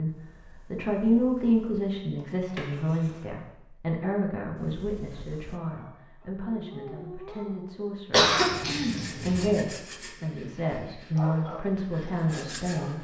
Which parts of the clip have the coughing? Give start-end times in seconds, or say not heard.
2.1-3.2, 8.1-9.5.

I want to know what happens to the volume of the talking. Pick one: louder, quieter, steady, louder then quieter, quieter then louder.
quieter then louder.